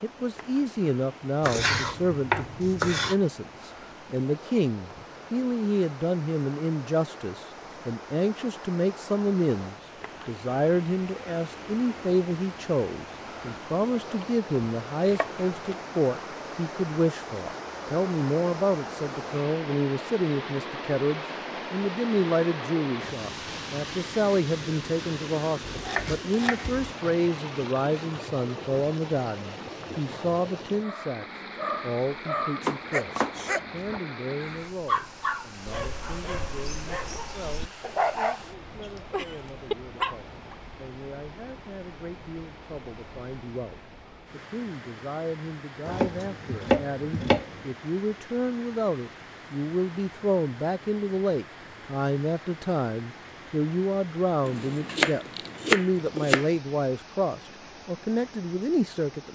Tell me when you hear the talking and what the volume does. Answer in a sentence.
The talking can be heard from 0.0 to 59.3 s, getting quieter then louder.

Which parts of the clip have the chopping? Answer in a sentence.
The chopping can be heard from 1.4 to 3.1 s, from 15.1 to 15.8 s, from 25.6 to 26.9 s, from 32.6 to 33.4 s, from 45.9 to 47.8 s and from 54.5 to 56.5 s.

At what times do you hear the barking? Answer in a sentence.
The barking can be heard from 30.8 to 40.5 s.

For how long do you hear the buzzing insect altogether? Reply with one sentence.
The buzzing insect can't be heard in this clip.